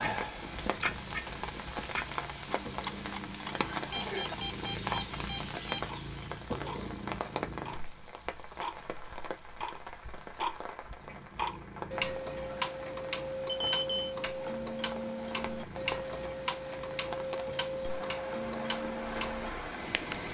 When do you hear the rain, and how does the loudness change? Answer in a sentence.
The rain can be heard from 0.0 to 20.2 s, getting quieter then louder.